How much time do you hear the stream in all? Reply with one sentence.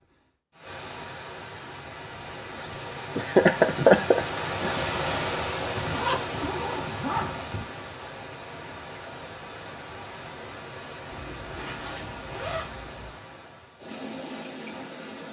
The stream can be heard for 15 seconds in total.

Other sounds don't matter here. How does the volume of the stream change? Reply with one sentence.
The loudness of the stream goes up, then down.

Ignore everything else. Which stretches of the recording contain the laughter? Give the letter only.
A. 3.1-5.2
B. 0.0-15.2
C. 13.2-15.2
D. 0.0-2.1
A.